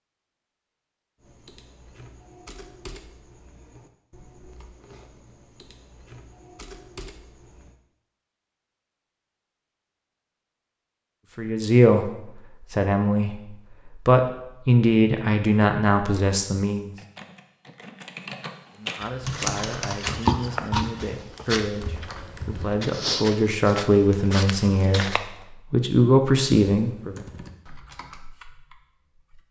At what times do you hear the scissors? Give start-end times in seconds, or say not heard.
19.0-20.9.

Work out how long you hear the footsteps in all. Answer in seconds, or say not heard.
6 s.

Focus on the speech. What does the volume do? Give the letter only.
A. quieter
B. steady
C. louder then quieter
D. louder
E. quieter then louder
E.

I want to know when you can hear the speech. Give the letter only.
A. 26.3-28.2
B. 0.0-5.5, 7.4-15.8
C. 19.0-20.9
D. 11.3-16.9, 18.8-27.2
D.